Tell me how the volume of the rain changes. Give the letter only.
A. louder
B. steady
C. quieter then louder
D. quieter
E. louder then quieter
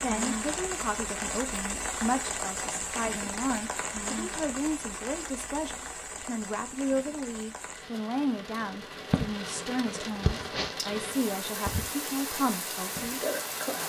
C.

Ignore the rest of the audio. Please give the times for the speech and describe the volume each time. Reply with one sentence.
The speech can be heard from 0.0 to 13.2 s, at a steady volume.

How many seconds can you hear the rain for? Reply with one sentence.
The rain can be heard for 14 seconds in total.